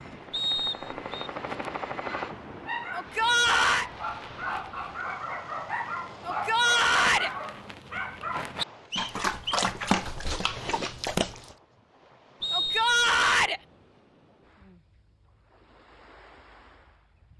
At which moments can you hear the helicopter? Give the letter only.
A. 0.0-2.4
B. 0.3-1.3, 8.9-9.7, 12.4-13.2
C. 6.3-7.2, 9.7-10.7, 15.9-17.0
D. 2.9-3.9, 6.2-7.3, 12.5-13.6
A.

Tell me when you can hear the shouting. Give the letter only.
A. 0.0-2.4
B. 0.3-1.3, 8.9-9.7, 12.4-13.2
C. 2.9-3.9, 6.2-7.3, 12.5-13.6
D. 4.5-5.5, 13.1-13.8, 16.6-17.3
C.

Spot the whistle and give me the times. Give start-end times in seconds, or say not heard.
0.3-1.3, 8.9-9.7, 12.4-13.2.